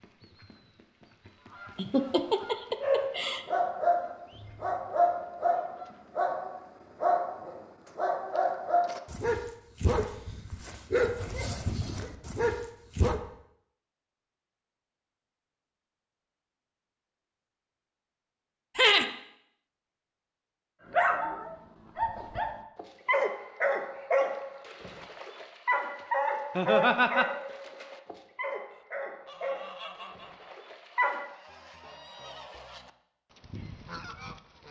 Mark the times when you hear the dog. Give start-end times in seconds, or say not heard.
2.8-13.2, 20.9-31.3.